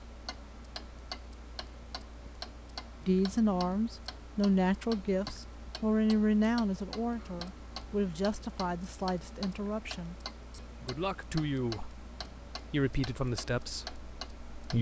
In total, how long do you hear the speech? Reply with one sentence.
The speech can be heard for 11 seconds in total.